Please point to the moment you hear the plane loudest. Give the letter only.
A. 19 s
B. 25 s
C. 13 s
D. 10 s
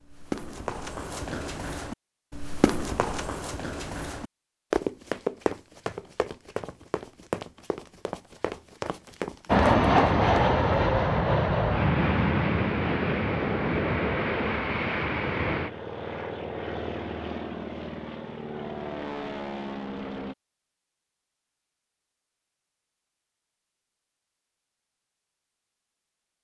D.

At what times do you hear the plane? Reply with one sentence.
You can hear the plane from 9.4 to 20.4 s.